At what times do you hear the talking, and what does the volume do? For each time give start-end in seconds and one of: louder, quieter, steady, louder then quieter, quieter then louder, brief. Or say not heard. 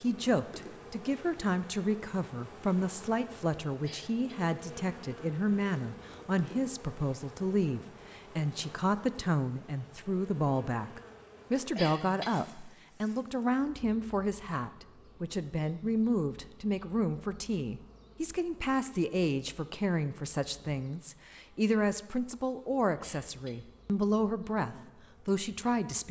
0.0-26.0 steady.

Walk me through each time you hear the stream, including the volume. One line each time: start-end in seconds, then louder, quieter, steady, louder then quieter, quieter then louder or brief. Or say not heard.
not heard.